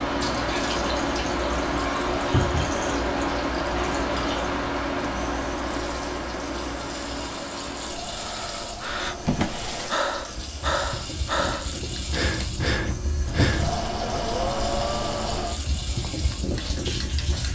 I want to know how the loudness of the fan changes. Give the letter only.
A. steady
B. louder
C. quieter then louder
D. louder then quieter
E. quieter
C.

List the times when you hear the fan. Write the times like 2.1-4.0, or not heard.
0.0-17.5.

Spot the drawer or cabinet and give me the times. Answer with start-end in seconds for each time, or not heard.
2.3-2.8, 9.2-9.9, 13.3-13.8.